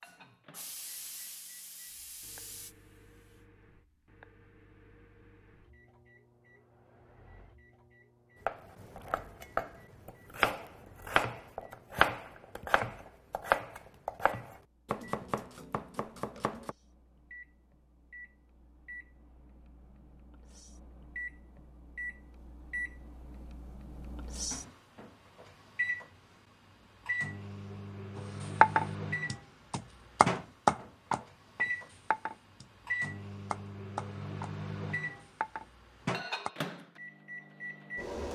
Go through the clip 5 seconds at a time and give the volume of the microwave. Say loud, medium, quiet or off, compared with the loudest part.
quiet, quiet, quiet, quiet, medium, loud, loud, loud.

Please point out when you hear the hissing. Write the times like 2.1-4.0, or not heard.
0.0-3.5.